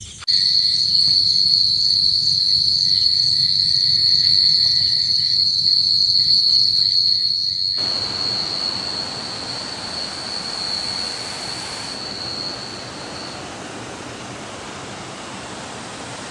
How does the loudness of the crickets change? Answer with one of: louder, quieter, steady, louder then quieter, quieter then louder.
quieter.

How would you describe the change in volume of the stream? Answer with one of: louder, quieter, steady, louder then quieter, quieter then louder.
steady.